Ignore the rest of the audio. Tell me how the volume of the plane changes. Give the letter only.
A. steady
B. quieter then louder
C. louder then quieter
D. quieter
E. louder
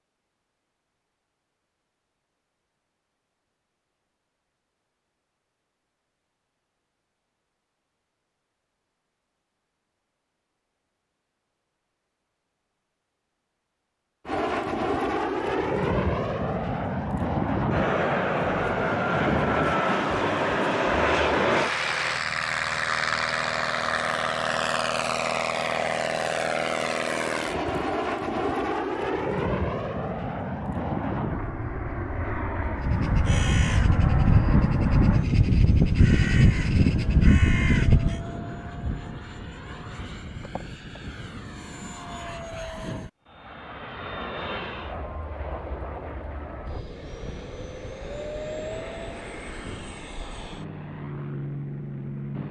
D.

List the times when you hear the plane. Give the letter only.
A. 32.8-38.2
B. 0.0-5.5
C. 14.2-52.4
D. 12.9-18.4
C.